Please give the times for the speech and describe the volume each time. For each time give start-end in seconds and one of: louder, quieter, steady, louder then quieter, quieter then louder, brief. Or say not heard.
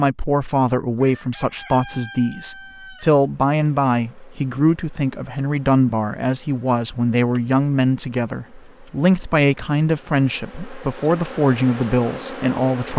0.0-12.9 steady.